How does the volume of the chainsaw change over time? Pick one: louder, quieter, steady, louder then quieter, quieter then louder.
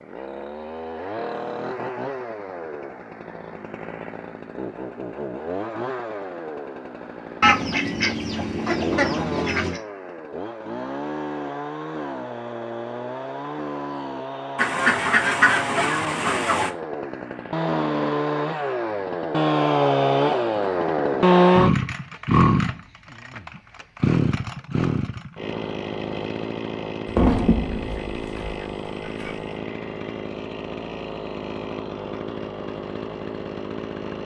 louder then quieter.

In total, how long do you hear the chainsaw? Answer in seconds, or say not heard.
34 s.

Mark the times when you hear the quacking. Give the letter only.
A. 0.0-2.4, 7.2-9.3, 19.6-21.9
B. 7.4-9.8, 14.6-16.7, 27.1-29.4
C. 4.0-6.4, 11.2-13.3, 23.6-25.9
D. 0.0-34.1
B.